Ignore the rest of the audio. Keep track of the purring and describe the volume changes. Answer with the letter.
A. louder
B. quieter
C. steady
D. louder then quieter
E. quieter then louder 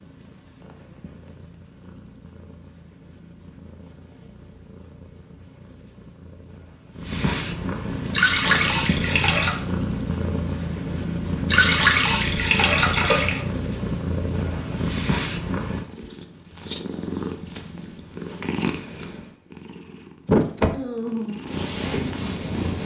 A.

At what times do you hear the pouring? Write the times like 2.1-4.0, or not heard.
8.1-9.6, 11.4-13.4.